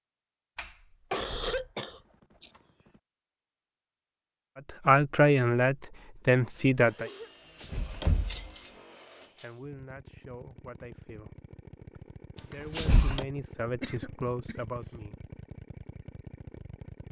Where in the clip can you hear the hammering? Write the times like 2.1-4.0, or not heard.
not heard.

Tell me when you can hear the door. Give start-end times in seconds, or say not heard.
0.6-1.7, 7.6-8.7, 12.3-13.2.